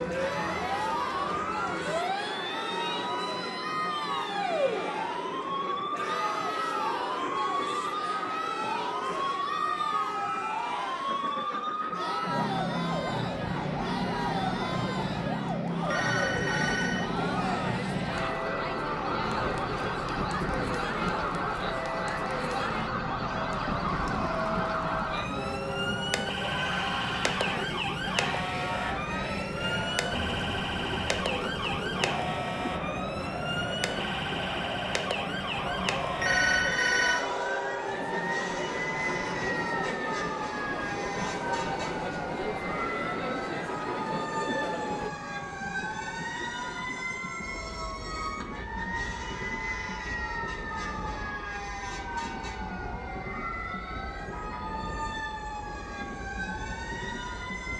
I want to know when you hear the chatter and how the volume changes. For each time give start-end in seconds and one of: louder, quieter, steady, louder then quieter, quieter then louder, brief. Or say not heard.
0.1-45.1 steady.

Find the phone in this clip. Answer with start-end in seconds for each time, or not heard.
15.8-17.1, 36.2-37.2.